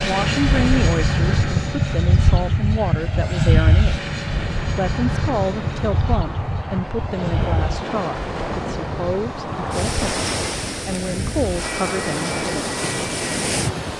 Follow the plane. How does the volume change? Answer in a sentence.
The loudness of the plane goes down.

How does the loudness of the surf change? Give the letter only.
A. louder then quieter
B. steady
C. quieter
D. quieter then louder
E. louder
E.